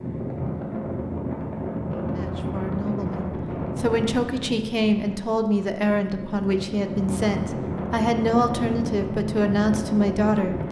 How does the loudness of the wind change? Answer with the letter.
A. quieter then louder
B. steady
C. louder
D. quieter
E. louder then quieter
A.